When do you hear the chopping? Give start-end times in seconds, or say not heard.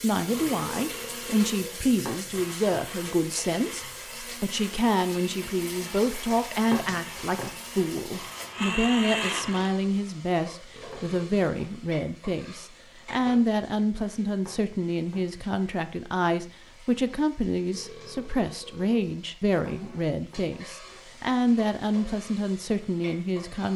2.0-2.9, 6.7-7.5, 10.9-11.8, 14.4-15.3, 19.6-20.5.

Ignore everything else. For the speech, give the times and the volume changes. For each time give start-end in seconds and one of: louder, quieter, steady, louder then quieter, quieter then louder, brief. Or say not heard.
0.0-23.7 steady.